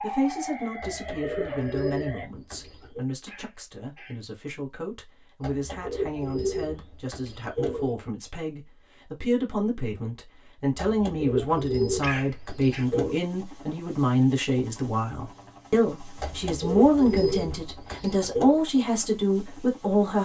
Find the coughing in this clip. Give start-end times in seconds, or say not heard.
3.2-4.2, 12.0-12.8.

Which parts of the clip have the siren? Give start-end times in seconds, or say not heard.
0.0-2.3.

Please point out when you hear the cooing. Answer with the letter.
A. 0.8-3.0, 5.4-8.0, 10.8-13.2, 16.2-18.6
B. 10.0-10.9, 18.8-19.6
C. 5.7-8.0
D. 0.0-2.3
A.